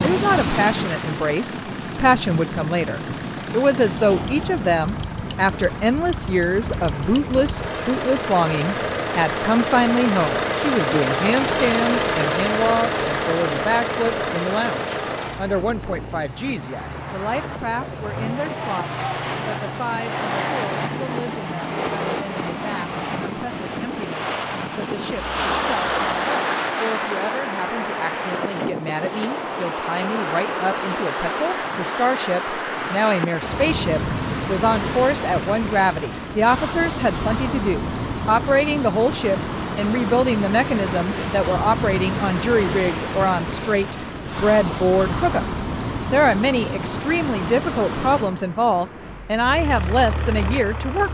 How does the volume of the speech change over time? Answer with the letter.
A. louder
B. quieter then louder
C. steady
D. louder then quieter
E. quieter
B.